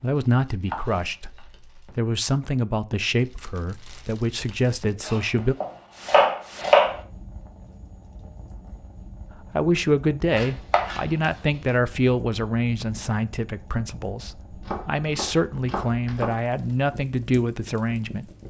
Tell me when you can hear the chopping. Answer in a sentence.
You can hear the chopping from 0.7 to 1.4 s, from 5.0 to 7.0 s, from 10.3 to 11.3 s and from 14.6 to 16.4 s.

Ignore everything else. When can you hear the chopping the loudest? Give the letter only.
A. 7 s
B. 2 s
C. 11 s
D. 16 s
A.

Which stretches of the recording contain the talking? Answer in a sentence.
You can hear the talking from 0.0 to 5.5 s and from 9.6 to 18.2 s.